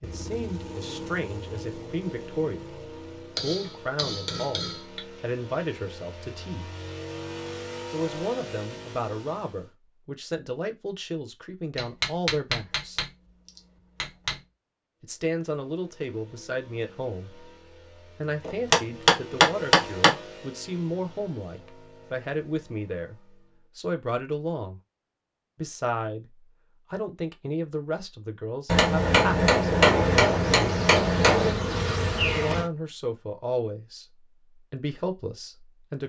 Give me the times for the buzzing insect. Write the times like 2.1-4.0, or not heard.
30.1-32.7.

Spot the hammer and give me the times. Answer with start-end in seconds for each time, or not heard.
3.4-5.0, 11.8-14.3, 18.4-20.1, 28.6-31.6.